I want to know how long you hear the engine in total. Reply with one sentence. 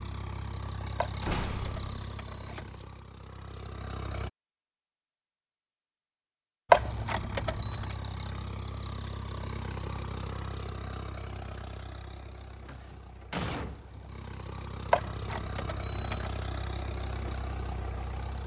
The engine can be heard for 16 seconds in total.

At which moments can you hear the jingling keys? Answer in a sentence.
You can hear the jingling keys from 1.0 to 2.9 s, from 6.7 to 8.0 s and from 14.9 to 16.4 s.